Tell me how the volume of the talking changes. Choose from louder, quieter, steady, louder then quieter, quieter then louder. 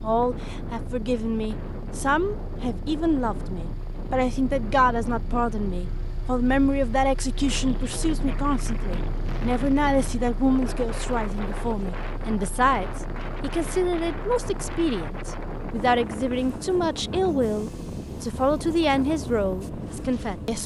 steady.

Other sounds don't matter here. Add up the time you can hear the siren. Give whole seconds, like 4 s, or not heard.
not heard.